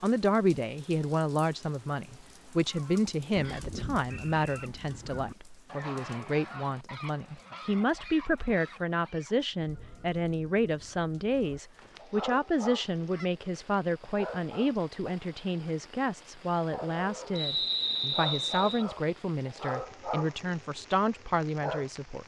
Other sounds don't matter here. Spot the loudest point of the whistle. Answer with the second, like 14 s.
18 s.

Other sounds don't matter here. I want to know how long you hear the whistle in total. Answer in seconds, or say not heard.
3 s.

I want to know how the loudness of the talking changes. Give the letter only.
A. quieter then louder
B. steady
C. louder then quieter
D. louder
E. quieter
B.